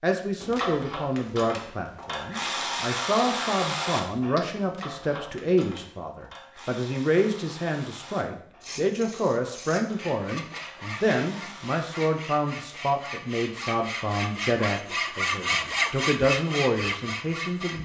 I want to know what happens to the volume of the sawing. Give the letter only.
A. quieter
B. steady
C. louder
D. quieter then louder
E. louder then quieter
C.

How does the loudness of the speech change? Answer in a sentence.
The volume of the speech stays about the same.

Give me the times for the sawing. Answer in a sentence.
You can hear the sawing from 8.6 to 17.8 s.